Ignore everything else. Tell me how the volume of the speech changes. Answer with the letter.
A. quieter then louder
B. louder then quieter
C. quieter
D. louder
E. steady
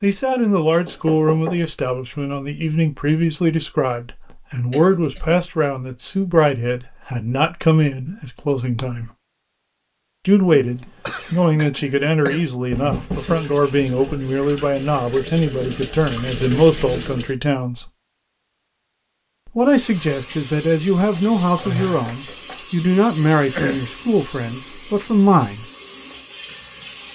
E.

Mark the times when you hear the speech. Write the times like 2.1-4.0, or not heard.
0.0-9.1, 10.2-17.9, 19.4-25.6.